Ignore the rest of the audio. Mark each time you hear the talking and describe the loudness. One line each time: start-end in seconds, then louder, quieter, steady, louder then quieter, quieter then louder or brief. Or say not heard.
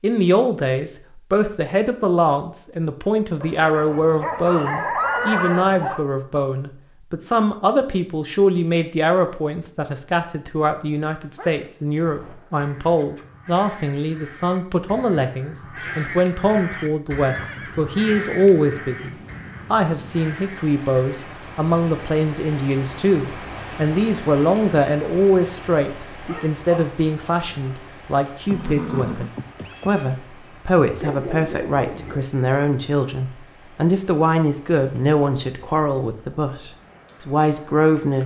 0.0-38.2 steady.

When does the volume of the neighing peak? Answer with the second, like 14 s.
5 s.